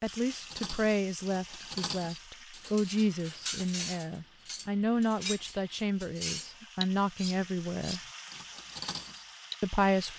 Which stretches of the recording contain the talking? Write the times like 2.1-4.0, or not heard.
0.0-8.0, 9.6-10.1.